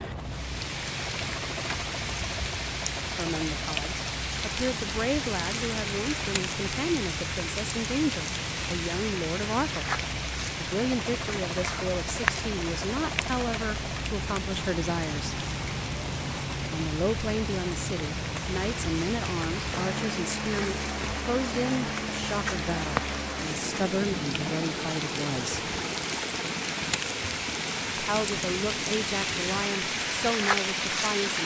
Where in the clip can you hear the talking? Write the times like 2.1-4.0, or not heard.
3.1-9.9, 10.6-15.4, 16.7-25.6, 27.9-31.4.